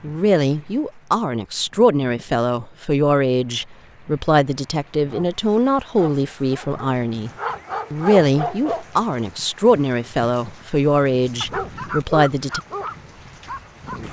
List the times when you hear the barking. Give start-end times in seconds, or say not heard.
5.0-8.8, 11.4-14.0.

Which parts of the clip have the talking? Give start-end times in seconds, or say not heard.
0.0-7.3, 7.9-12.6.